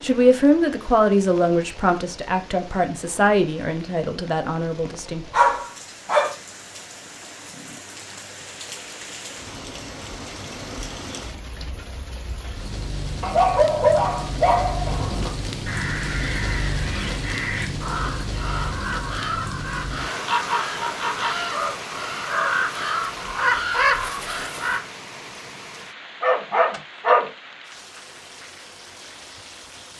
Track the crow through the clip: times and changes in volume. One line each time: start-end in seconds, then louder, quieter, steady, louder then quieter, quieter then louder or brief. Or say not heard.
14.8-24.8 louder.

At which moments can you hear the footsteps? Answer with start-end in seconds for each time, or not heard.
not heard.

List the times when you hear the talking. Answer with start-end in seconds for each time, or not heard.
0.0-5.2.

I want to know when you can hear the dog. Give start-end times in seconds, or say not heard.
4.8-6.3, 13.2-14.9, 26.2-27.2.